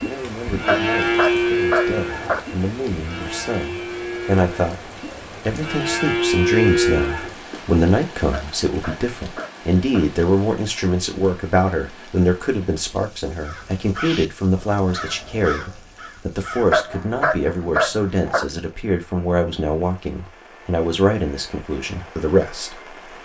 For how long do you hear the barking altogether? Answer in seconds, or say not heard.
5 s.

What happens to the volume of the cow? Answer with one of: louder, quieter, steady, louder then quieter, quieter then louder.
quieter then louder.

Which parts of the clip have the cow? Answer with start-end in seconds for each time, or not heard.
0.0-7.3.